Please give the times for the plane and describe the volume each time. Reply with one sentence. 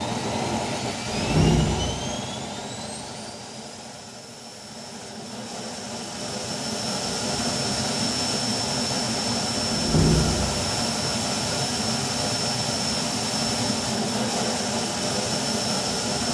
The plane can be heard from 0.0 to 16.2 s, getting quieter then louder.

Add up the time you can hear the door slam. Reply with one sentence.
You can hear the door slam for 2 seconds altogether.